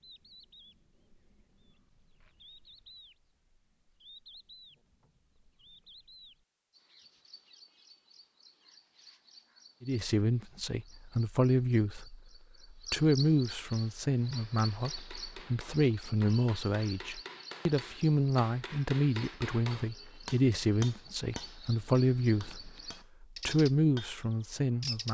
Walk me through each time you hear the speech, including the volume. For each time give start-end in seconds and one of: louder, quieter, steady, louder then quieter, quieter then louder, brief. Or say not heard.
9.8-25.0 steady.